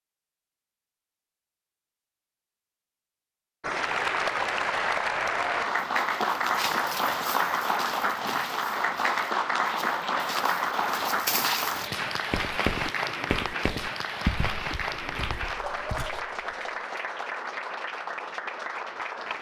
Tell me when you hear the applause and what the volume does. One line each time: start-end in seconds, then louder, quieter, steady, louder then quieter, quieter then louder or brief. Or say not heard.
3.6-19.3 quieter.